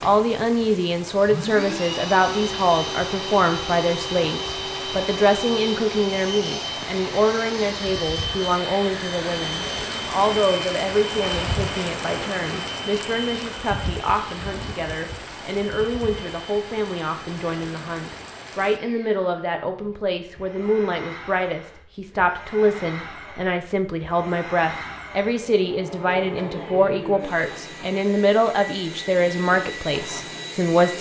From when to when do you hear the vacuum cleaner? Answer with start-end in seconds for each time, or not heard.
0.0-30.9.